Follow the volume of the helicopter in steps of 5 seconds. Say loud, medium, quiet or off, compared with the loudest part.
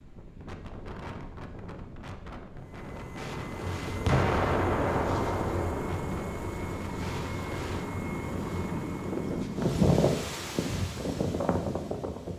loud, loud, off.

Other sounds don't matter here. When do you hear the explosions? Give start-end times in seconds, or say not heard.
4.0-6.5.